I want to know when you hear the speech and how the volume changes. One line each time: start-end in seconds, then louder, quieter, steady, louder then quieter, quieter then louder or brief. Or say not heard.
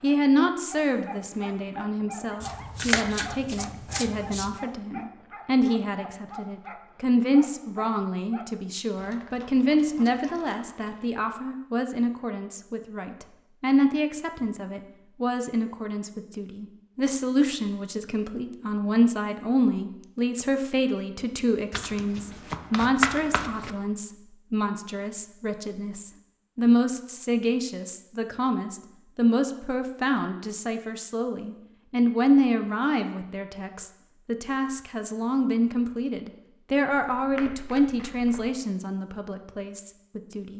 0.0-40.5 steady.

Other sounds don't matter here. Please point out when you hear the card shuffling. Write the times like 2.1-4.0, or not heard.
2.4-4.5, 21.7-23.8, 37.1-38.5.